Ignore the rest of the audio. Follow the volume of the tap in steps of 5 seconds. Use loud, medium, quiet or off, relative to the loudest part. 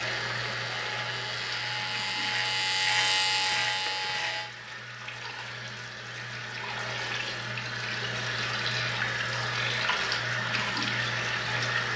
medium, loud, loud.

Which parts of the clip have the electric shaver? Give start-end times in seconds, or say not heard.
0.0-4.5.